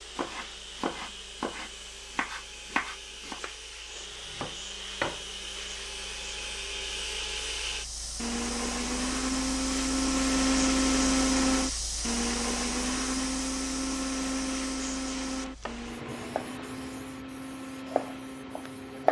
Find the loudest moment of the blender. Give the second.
11 s.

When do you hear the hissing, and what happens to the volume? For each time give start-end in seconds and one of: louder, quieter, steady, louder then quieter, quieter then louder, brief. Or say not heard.
0.0-19.0 louder then quieter.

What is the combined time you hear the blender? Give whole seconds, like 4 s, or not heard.
19 s.